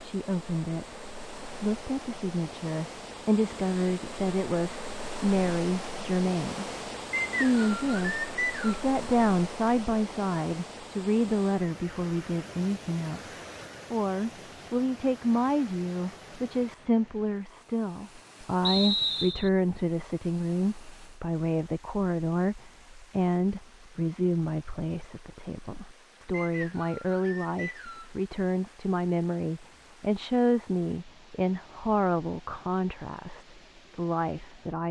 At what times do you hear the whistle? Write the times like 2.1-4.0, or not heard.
7.1-8.8, 18.6-19.5, 26.3-28.1.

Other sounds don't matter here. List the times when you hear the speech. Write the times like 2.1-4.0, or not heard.
0.0-0.9, 1.6-6.7, 7.3-34.8.